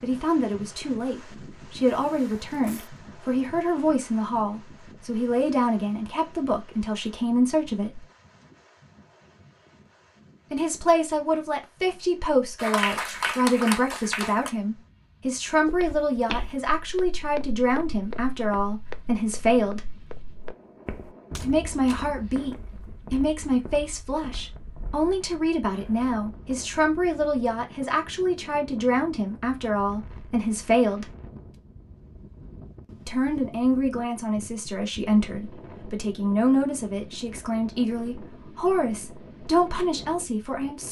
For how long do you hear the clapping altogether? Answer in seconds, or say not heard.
2 s.